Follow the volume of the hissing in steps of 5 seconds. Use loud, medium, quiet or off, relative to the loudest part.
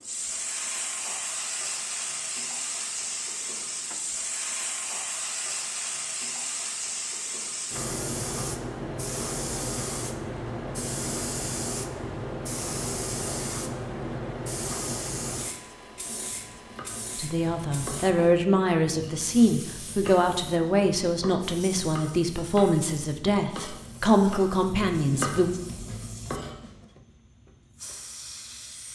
loud, loud, loud, medium, quiet, quiet.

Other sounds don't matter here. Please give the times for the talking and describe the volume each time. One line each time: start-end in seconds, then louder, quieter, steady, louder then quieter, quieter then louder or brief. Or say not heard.
17.1-25.5 steady.